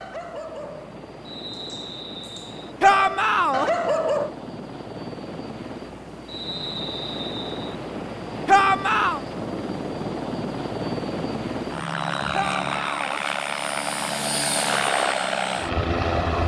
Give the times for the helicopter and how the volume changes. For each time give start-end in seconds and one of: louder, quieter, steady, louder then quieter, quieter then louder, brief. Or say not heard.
0.0-16.4 louder.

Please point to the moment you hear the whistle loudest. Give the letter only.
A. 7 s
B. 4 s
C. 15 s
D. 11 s
A.